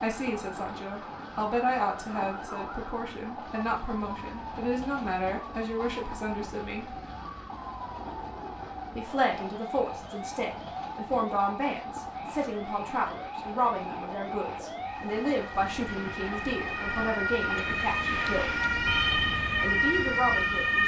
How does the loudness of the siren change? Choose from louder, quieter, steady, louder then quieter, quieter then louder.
louder.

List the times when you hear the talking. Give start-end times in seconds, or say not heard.
0.0-7.0, 8.9-18.6, 19.6-20.8.